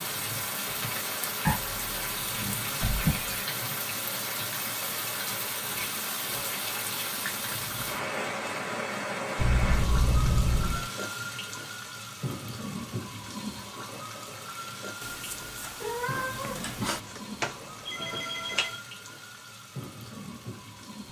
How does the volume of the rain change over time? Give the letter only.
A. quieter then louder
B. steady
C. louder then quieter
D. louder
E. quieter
E.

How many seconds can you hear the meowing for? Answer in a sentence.
You can hear the meowing for 2 seconds altogether.